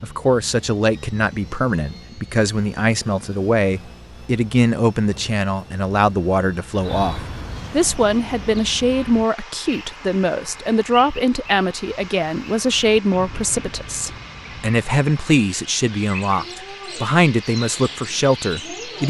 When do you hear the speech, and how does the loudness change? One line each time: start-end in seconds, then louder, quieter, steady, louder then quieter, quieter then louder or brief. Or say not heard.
0.0-19.0 steady.